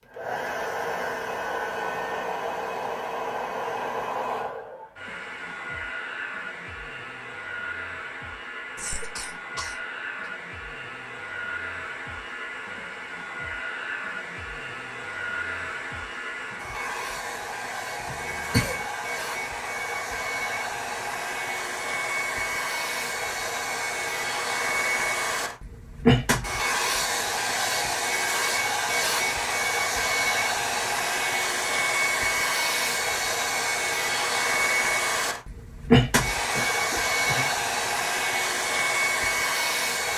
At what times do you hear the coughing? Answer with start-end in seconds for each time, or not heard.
8.8-10.3, 18.1-18.9, 36.5-37.5.